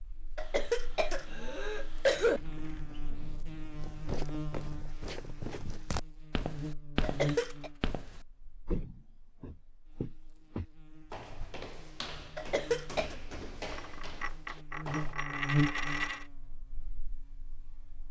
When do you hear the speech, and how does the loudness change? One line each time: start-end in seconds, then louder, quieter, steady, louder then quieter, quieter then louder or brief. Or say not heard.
not heard.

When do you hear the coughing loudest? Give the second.
2 s.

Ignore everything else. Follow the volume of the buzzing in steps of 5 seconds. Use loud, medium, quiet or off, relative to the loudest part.
medium, medium, medium, loud.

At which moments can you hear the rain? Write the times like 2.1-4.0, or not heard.
not heard.